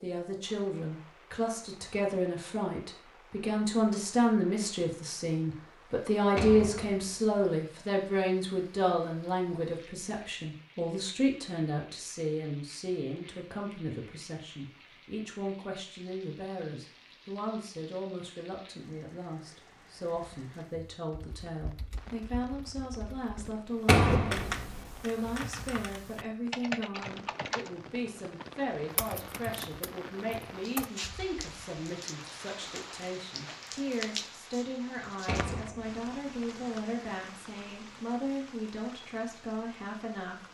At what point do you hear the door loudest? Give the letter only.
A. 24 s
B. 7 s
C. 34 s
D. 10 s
A.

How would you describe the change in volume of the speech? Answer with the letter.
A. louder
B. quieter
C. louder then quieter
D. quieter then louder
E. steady
B.